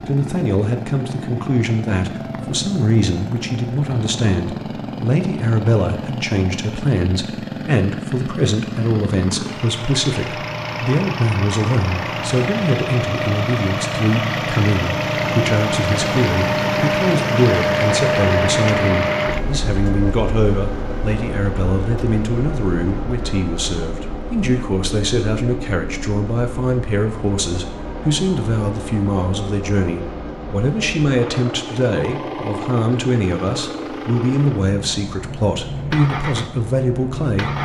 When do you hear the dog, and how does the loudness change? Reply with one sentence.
You can't hear the dog here.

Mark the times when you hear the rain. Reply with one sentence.
You can't hear the rain here.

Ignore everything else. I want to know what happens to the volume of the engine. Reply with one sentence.
The volume of the engine goes up, then down.